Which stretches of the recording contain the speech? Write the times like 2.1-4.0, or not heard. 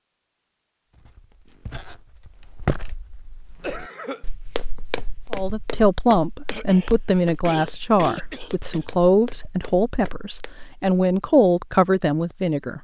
5.3-12.7.